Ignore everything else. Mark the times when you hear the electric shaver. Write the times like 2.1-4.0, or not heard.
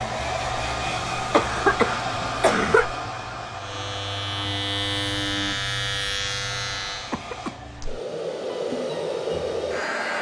3.5-7.2.